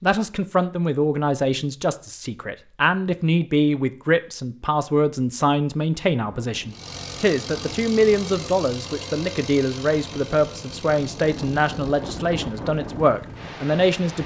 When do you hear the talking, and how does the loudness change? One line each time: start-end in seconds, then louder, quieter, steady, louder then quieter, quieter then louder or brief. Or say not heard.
0.0-14.2 steady.